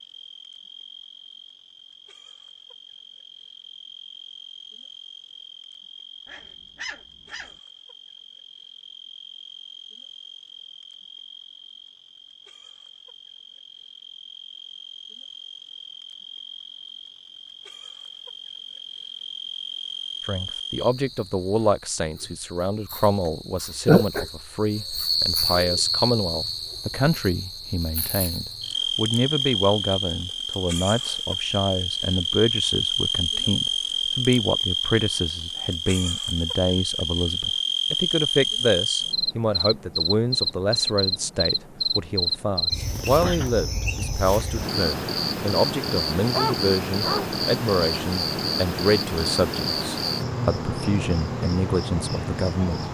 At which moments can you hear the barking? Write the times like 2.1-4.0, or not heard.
6.2-7.5, 46.3-47.4.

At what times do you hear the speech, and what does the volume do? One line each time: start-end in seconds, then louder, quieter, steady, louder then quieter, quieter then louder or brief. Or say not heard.
20.2-52.8 steady.